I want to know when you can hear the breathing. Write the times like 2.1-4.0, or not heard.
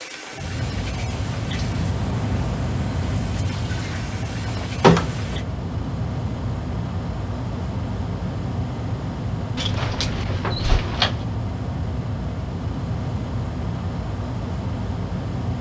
not heard.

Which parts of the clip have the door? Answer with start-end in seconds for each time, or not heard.
3.8-5.4, 9.6-11.2.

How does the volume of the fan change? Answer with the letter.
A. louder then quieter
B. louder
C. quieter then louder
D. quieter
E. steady
E.